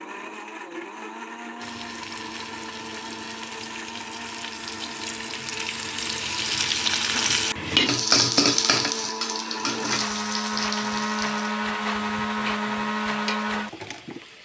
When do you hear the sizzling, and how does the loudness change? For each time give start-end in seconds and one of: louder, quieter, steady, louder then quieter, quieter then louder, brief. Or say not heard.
1.6-14.3 louder then quieter.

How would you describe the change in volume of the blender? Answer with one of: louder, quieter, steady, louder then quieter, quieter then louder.
louder.